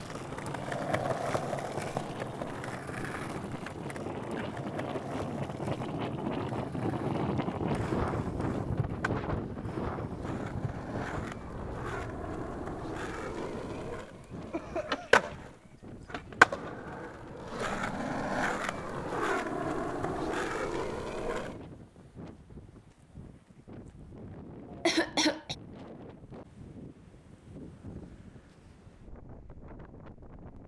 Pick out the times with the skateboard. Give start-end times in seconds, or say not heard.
0.0-21.6.